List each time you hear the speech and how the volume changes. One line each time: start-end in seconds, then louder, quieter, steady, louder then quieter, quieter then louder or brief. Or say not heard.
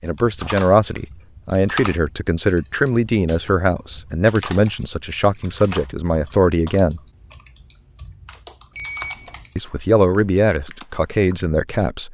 0.0-7.0 steady
9.6-12.0 brief.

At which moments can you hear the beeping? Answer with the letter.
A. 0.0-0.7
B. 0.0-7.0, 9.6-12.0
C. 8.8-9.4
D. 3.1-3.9
C.